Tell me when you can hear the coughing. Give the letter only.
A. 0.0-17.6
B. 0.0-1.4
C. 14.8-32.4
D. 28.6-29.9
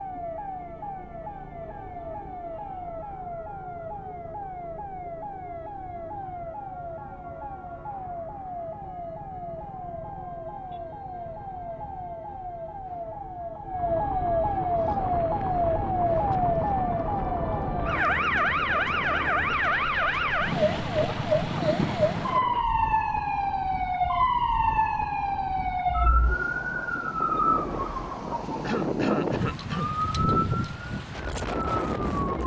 D.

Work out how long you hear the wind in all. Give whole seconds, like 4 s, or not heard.
18 s.